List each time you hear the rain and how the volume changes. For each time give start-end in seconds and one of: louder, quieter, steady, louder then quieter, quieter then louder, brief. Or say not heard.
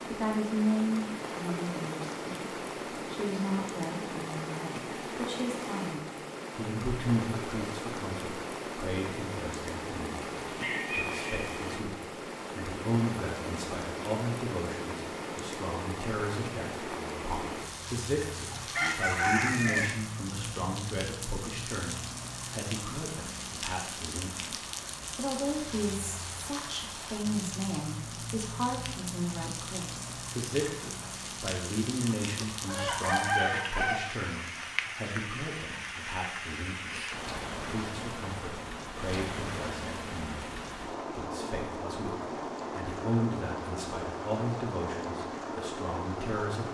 0.0-46.7 steady.